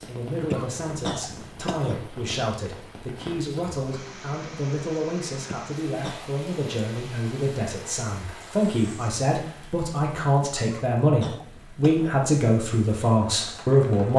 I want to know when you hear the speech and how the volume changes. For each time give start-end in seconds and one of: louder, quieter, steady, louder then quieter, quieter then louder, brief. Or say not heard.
0.1-14.1 louder.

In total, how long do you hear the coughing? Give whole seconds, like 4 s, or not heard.
4 s.